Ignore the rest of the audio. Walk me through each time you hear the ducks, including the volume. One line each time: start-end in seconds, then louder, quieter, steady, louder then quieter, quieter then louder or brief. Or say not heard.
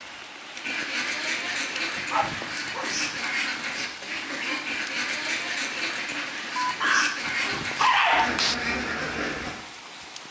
0.6-9.6 steady.